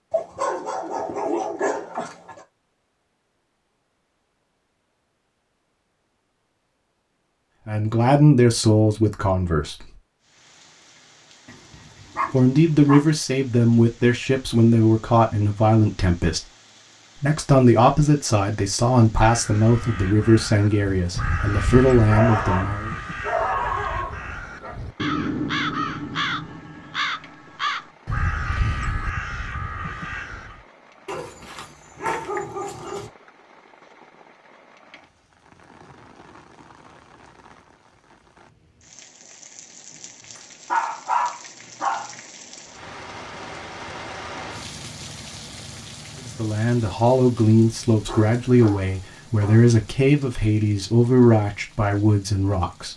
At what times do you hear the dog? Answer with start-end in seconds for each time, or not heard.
0.1-2.5, 11.4-13.1, 22.1-24.8, 31.1-33.1, 40.4-42.1, 48.0-49.7.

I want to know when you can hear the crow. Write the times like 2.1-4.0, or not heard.
19.1-30.6.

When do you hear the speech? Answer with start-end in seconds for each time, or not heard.
7.7-9.9, 12.3-16.4, 17.1-22.9, 46.2-52.9.